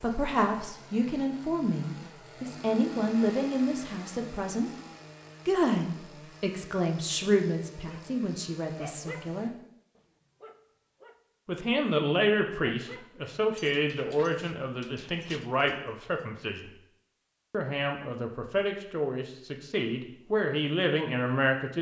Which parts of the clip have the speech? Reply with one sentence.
You can hear the speech from 0.0 to 4.7 s, from 5.5 to 9.5 s, from 11.4 to 16.7 s and from 17.5 to 21.7 s.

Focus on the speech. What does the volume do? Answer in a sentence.
The volume of the speech stays about the same.